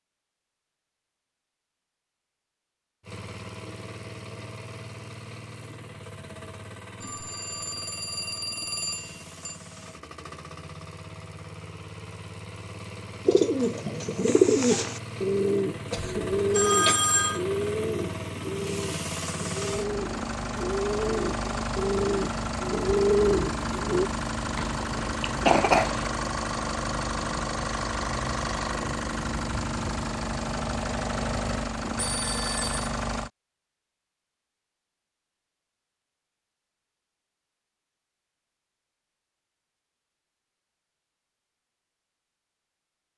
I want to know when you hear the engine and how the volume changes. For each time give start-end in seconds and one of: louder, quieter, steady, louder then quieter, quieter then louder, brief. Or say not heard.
3.0-33.3 louder.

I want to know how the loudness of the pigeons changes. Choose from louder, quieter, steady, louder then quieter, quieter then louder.
quieter then louder.